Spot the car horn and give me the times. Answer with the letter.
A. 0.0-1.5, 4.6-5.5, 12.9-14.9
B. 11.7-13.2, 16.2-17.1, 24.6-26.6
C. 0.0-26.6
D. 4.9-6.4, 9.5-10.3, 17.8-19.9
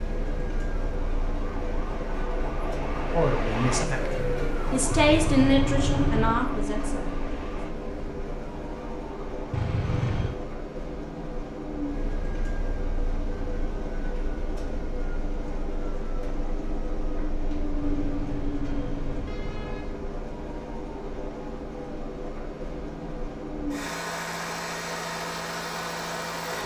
D.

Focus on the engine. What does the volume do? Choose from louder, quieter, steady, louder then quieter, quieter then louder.
steady.